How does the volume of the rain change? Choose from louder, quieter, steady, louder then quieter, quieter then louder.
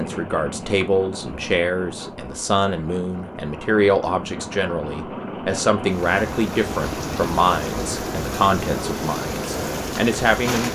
louder.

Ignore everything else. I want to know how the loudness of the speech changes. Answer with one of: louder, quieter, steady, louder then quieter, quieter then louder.
steady.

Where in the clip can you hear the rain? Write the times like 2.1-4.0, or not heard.
0.0-10.7.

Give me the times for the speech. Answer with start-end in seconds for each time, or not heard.
0.0-10.7.